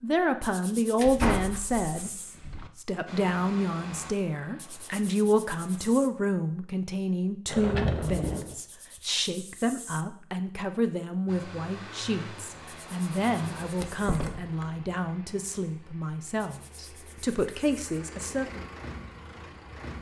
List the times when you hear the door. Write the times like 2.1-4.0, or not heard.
0.9-2.7, 7.5-8.6, 13.8-14.7.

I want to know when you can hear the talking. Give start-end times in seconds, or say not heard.
0.0-18.6.